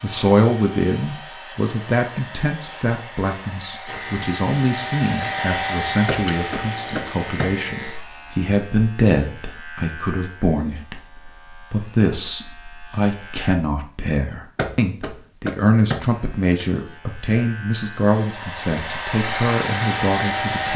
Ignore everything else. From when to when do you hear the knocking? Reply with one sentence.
The knocking can be heard from 6.0 to 7.5 s and from 14.6 to 16.1 s.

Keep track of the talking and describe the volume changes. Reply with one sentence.
The loudness of the talking stays about the same.